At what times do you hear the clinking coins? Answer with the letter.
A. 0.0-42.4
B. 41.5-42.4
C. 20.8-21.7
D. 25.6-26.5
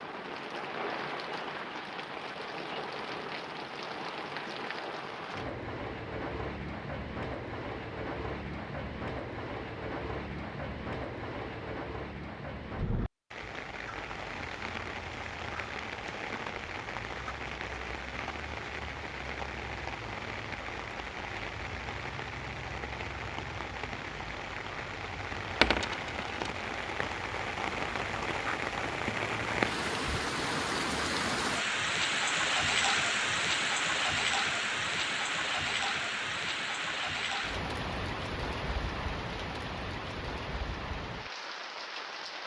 D.